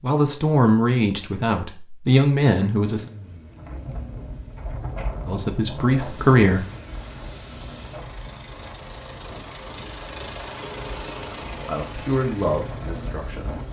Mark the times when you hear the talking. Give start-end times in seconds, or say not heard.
0.0-3.0, 5.2-6.7, 11.6-13.6.